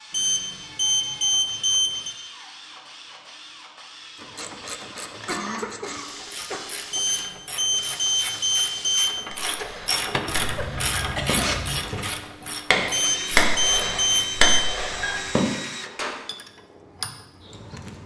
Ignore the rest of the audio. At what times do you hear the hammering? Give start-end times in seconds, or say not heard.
9.3-16.1.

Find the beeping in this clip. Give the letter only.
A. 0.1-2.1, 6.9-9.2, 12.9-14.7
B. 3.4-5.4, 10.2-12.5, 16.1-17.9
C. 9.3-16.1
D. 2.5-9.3
A.